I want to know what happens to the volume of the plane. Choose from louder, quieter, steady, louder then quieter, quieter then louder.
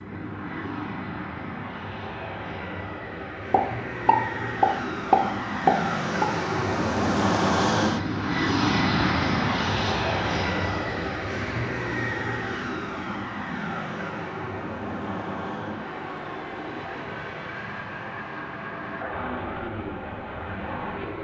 louder then quieter.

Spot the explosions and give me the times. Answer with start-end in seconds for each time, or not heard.
3.5-6.3.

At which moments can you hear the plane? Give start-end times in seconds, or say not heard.
0.0-21.1.